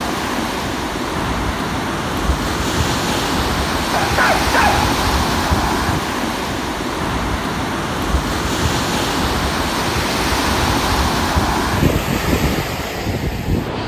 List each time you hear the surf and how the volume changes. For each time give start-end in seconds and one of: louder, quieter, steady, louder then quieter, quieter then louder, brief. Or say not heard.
0.0-13.8 steady.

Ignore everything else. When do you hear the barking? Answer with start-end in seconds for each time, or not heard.
3.9-4.9.